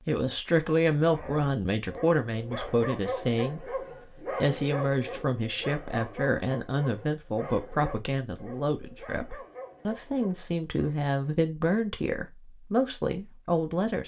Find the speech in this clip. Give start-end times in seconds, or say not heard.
0.1-14.0.